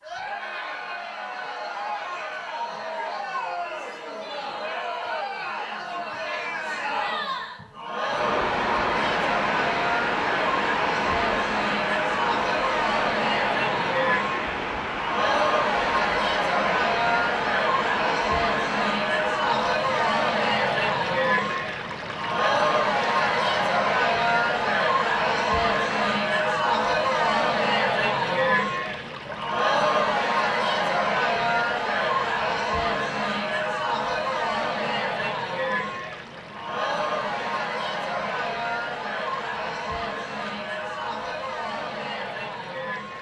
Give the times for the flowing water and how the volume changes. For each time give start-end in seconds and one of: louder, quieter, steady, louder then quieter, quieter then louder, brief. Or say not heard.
8.0-43.1 quieter.